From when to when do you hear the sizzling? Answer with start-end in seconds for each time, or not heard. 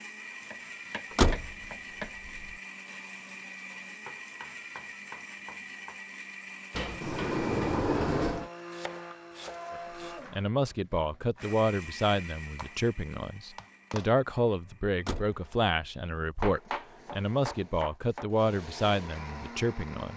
not heard.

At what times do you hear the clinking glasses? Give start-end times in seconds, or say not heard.
not heard.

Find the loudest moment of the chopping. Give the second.
17 s.